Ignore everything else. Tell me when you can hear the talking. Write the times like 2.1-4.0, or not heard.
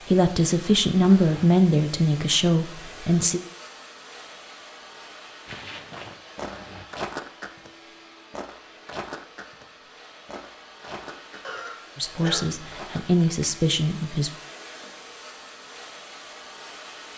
0.1-3.4, 11.9-14.3.